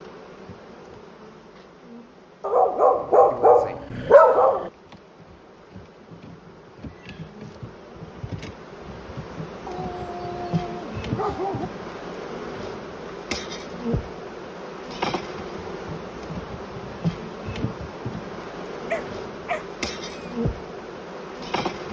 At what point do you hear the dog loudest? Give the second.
4 s.